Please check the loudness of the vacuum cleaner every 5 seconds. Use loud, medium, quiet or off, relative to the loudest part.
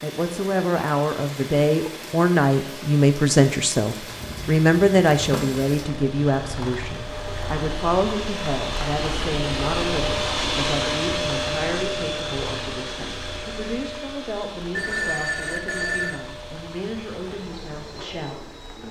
quiet, loud, loud, quiet.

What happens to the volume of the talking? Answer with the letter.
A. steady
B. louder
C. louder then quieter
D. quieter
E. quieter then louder
D.